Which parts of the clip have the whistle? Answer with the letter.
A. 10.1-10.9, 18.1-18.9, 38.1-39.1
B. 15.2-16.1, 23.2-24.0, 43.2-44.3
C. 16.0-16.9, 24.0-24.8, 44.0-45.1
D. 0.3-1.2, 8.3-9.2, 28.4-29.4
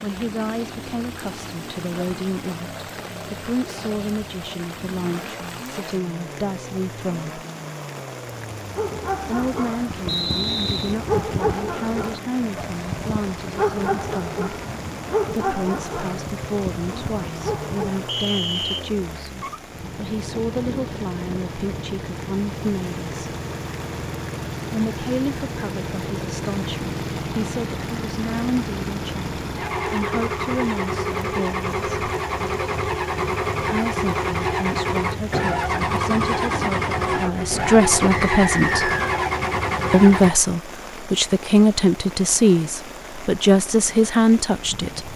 A.